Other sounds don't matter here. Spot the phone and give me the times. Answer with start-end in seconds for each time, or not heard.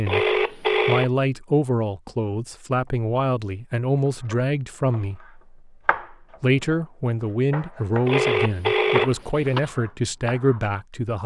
0.1-1.1, 8.1-9.7.